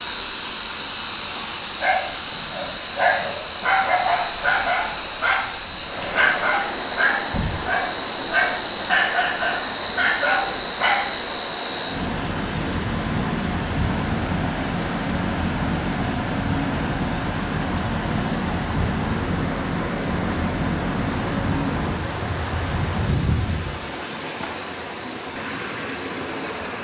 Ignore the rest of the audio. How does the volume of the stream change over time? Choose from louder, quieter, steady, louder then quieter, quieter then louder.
steady.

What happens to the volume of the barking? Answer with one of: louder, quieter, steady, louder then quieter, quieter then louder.
steady.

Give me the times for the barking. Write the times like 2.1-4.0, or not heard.
1.8-11.2.